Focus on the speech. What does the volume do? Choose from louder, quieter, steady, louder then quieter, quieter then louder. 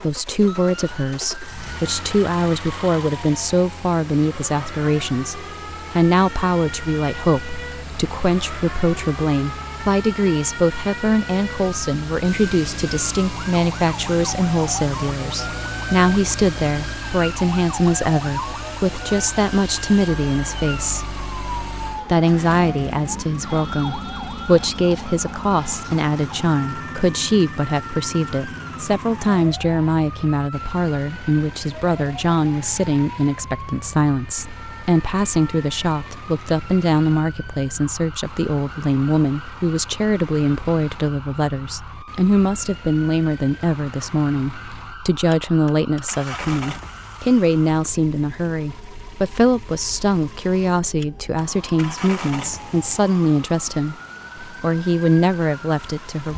steady.